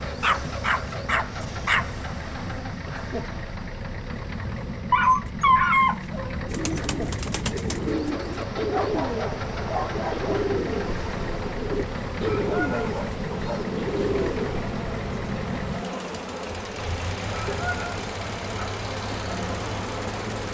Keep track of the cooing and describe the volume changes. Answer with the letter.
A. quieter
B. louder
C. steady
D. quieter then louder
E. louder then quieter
C.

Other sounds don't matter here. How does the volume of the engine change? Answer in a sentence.
The loudness of the engine stays about the same.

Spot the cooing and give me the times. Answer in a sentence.
You can hear the cooing from 6.5 to 14.7 s.